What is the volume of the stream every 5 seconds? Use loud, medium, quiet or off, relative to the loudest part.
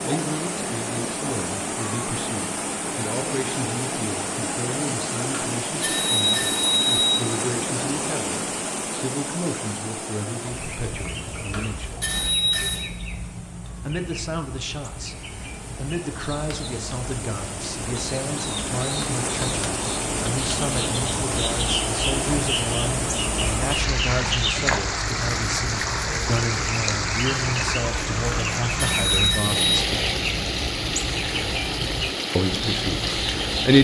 loud, loud, quiet, medium, loud, loud, loud.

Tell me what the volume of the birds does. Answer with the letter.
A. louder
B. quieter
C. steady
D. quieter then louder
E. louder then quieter
A.